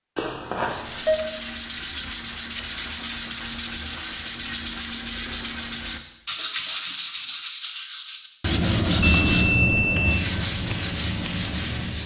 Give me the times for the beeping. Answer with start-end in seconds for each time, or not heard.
0.1-1.1, 9.0-10.1.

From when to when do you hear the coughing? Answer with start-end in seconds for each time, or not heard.
not heard.